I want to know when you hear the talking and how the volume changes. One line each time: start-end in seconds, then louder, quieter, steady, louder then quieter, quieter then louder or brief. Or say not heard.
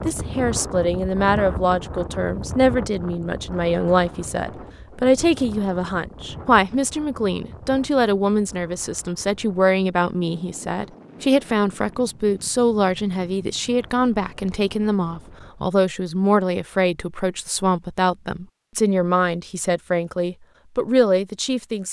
0.1-21.8 steady.